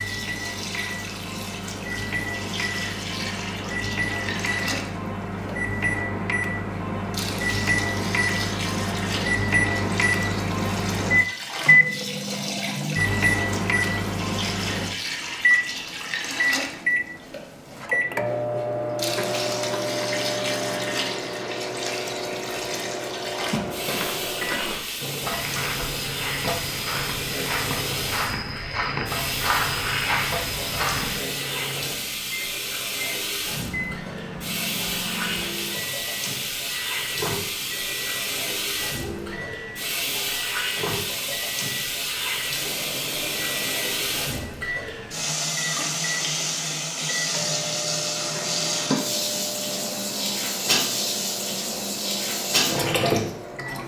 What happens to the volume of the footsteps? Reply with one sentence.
The volume of the footsteps goes up.